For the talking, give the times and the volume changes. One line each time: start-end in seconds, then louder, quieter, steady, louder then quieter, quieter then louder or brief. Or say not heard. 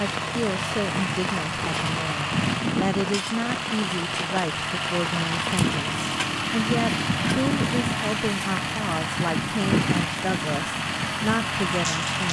0.0-12.2 steady.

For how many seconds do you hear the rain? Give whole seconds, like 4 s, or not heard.
12 s.